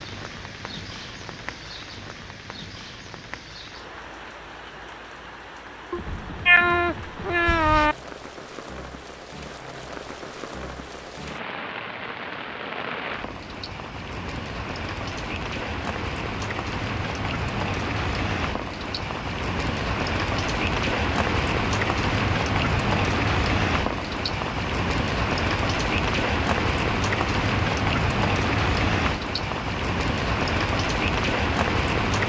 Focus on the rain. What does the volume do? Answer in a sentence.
The loudness of the rain goes up.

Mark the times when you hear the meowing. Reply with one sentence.
You can hear the meowing from 5.9 to 8.0 s.